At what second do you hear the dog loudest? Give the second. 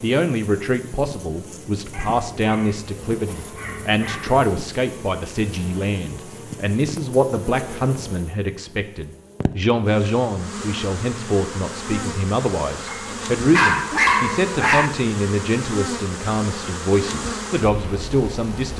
14 s.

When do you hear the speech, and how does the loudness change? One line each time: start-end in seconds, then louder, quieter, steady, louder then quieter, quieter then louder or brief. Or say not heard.
0.0-18.7 steady.